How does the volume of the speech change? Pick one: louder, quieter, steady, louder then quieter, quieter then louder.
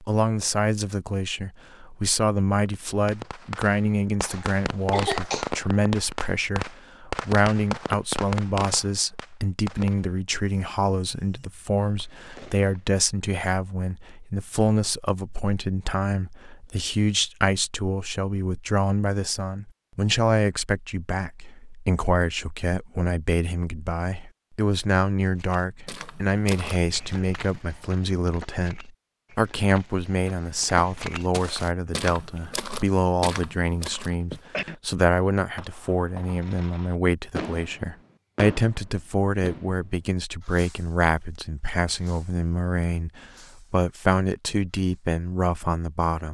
steady.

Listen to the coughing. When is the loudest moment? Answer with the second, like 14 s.
5 s.